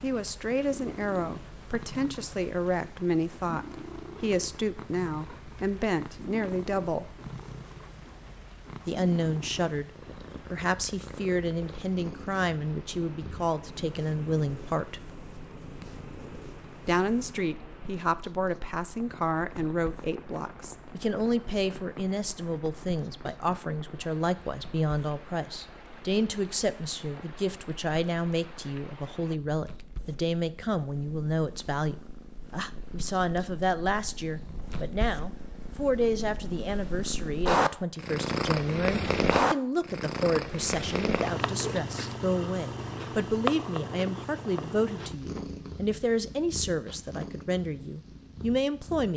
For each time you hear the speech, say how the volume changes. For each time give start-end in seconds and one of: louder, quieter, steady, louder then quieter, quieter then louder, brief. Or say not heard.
0.0-7.2 steady
8.8-9.9 brief
10.5-15.0 steady
16.9-49.1 steady.